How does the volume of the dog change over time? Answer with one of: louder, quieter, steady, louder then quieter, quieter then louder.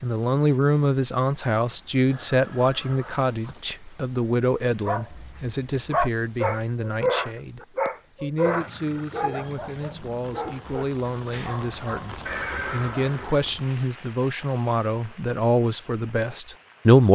quieter.